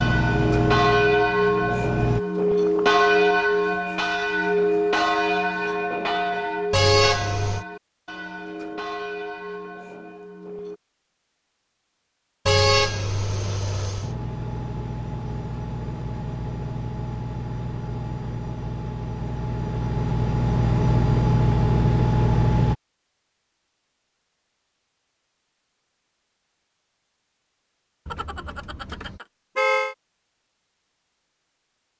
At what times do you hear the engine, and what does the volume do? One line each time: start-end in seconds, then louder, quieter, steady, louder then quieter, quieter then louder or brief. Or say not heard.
0.0-2.2 brief
14.0-22.8 louder.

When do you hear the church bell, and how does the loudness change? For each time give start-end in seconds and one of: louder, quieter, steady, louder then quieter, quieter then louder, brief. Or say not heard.
0.0-10.8 quieter.